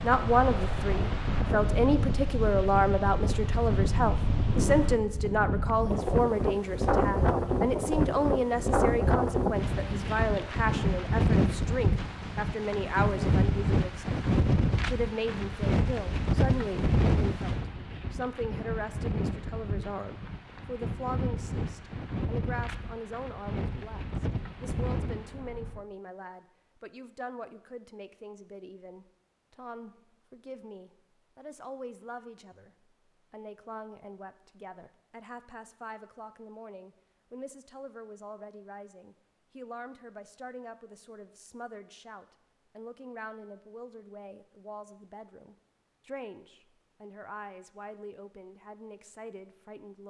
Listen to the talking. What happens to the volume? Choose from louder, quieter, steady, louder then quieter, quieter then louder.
quieter.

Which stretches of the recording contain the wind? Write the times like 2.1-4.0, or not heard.
0.0-25.8.